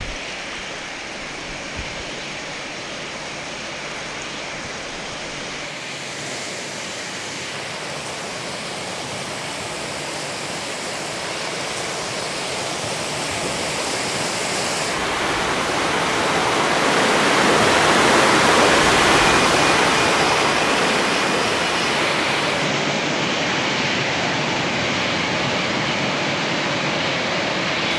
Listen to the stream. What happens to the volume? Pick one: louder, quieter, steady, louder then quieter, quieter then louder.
louder then quieter.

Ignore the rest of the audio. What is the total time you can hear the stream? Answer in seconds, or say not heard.
28 s.